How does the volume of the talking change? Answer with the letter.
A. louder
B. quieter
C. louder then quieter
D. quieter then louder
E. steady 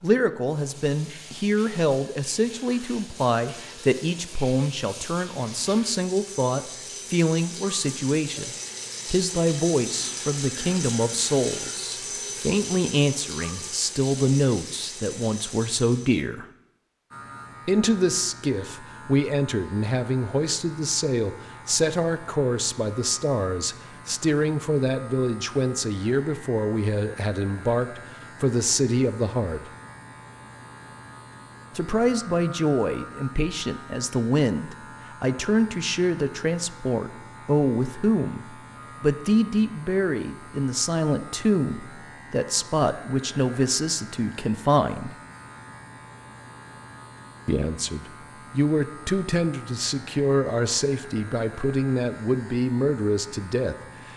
E.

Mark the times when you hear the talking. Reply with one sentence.
You can hear the talking from 0.0 to 8.5 s, from 9.1 to 16.4 s, from 17.6 to 29.6 s, from 31.8 to 45.1 s and from 47.5 to 54.1 s.